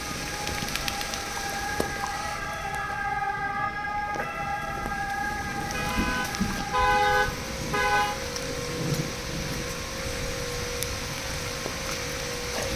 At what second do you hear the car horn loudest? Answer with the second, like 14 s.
7 s.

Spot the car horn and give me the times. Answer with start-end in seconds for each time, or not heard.
5.5-8.2.